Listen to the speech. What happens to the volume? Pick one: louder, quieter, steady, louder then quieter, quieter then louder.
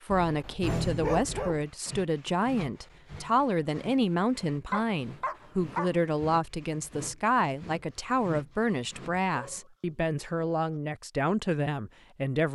steady.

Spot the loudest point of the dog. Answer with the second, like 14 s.
1 s.